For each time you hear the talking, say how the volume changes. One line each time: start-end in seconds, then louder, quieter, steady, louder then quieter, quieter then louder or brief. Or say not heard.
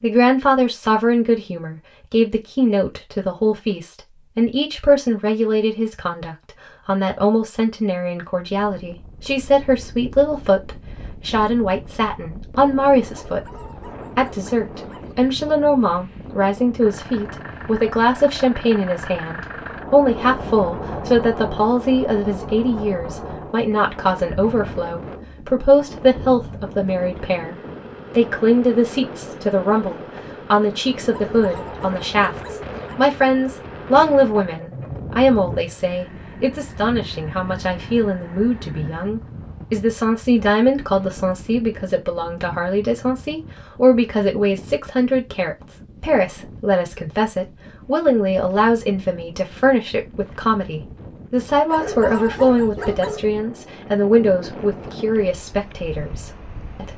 0.0-56.9 steady.